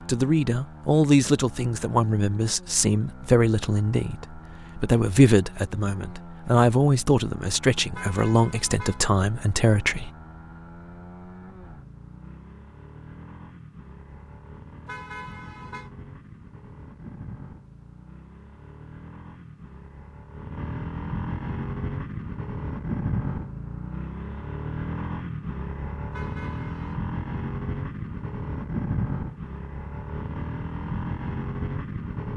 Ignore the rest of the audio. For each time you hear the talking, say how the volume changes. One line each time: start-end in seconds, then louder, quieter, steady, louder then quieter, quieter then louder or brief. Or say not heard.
0.1-10.1 steady.